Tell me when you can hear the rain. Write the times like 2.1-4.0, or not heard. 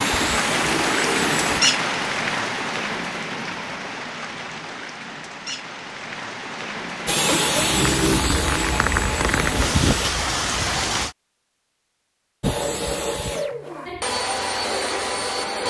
0.0-11.2.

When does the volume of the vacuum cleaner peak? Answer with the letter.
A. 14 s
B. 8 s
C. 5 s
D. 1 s
B.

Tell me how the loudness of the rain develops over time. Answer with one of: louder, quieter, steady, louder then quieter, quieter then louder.
quieter then louder.